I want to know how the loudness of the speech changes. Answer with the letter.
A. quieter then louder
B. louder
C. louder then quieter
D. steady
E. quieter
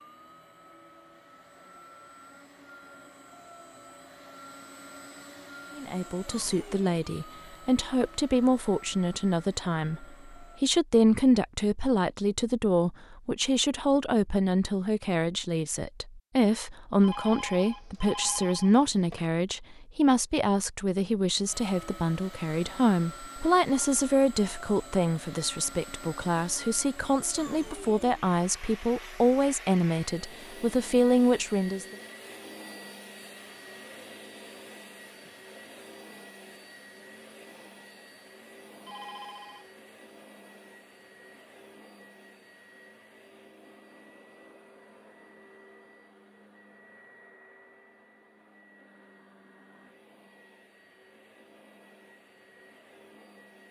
D.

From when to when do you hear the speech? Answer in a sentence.
The speech can be heard from 5.8 to 31.9 s.